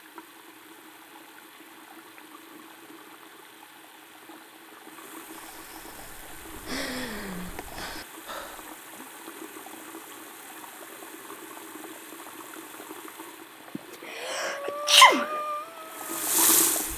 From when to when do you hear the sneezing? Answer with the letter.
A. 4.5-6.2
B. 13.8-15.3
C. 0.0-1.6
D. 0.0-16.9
B.